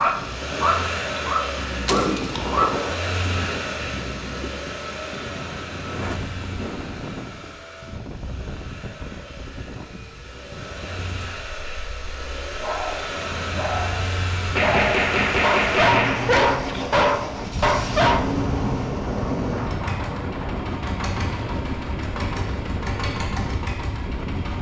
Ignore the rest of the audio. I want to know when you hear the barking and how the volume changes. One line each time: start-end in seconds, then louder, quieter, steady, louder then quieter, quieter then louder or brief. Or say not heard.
0.0-3.0 brief
12.6-18.3 louder.